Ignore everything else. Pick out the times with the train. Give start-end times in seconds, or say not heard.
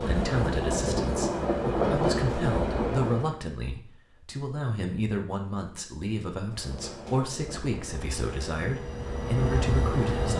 0.0-3.4, 6.3-10.3.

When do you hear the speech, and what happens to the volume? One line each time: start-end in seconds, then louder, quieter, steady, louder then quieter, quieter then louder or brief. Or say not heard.
0.0-10.3 steady.